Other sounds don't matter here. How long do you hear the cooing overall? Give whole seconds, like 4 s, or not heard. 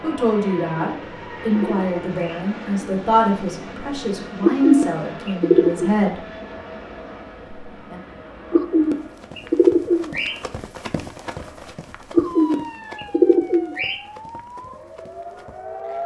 7 s.